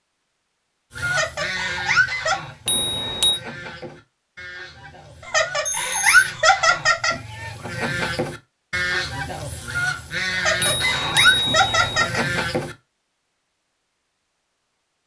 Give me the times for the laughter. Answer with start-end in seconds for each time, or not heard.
1.1-2.4, 5.2-7.2, 10.3-12.2.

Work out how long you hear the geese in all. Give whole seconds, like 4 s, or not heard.
12 s.